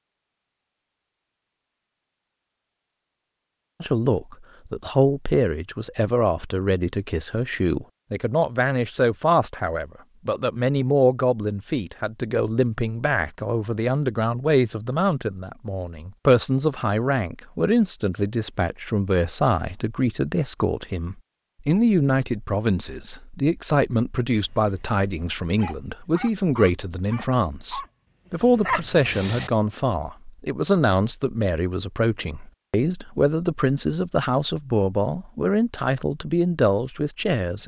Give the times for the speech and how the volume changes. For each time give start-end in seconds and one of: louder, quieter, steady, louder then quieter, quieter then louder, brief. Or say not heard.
3.8-37.6 steady.